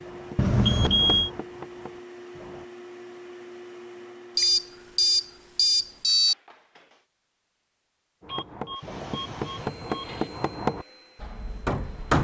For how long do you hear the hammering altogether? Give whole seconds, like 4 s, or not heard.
7 s.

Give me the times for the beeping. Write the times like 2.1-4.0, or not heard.
0.3-1.3, 4.3-6.3, 8.2-10.3.